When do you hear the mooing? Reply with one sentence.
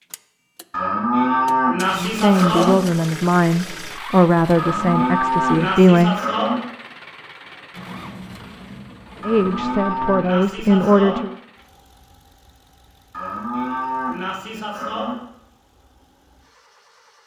The mooing can be heard from 0.7 to 2.8 s, from 4.5 to 6.6 s, from 9.2 to 11.2 s and from 13.1 to 15.2 s.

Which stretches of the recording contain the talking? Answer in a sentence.
The talking can be heard from 1.9 to 6.2 s and from 9.2 to 11.3 s.